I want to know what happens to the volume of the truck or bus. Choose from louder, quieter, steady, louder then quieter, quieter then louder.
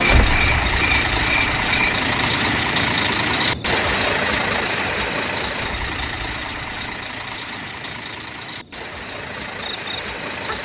quieter.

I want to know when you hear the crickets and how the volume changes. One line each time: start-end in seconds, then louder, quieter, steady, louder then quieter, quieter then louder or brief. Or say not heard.
0.2-10.6 quieter.